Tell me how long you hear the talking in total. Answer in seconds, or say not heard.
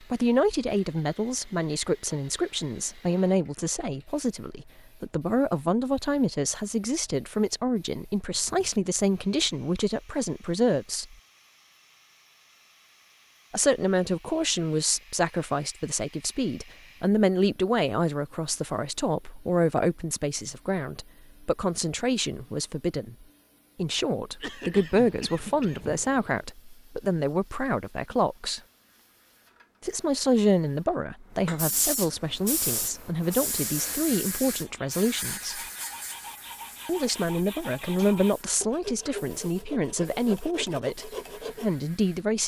37 s.